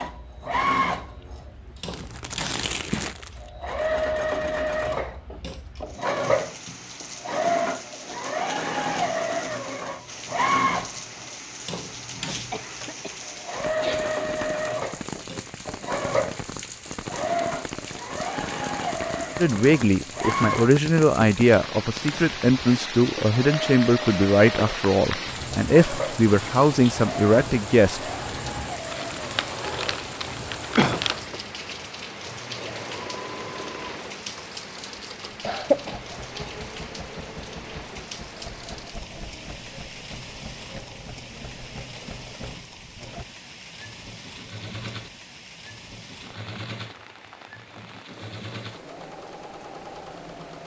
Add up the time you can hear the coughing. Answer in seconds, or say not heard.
3 s.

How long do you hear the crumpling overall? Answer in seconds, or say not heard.
4 s.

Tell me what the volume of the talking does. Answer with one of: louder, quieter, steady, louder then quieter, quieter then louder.
steady.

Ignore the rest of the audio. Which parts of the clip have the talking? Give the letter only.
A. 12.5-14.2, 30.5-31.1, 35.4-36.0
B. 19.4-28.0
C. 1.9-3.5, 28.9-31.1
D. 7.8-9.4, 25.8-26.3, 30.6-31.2
B.